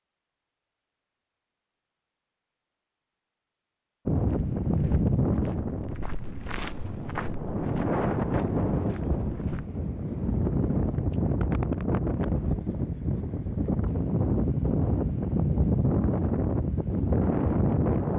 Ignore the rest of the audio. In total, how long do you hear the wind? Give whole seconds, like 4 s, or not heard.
14 s.